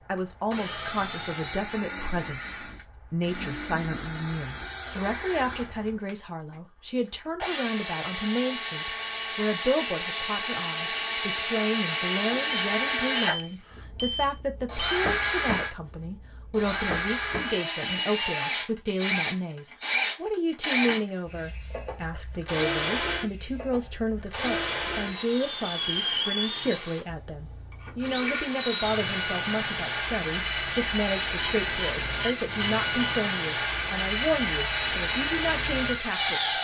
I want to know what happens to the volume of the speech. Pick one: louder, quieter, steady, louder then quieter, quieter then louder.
steady.